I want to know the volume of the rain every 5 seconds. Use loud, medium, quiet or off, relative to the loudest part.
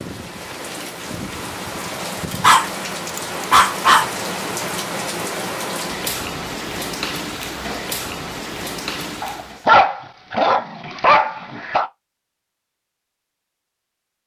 loud, loud, off.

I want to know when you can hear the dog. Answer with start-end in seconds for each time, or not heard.
2.3-4.1, 9.2-11.9.